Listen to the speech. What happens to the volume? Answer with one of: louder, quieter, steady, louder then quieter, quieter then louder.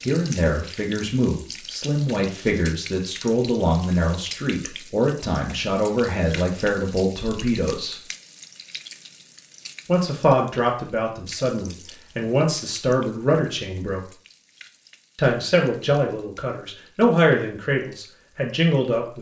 steady.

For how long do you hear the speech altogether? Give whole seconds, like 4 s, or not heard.
16 s.